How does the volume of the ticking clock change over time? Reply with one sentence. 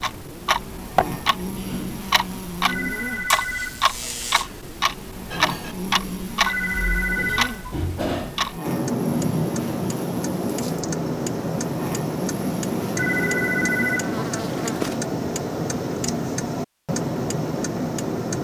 The loudness of the ticking clock stays about the same.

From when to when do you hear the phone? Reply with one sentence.
You can hear the phone from 2.6 to 3.8 s, from 6.4 to 7.8 s and from 12.9 to 14.2 s.